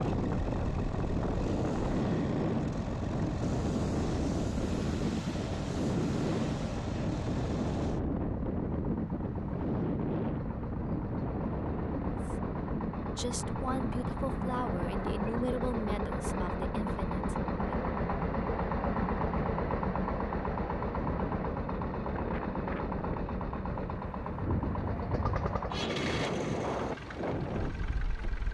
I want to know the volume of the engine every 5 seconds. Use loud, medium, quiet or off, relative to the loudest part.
medium, medium, medium, loud, loud, medium.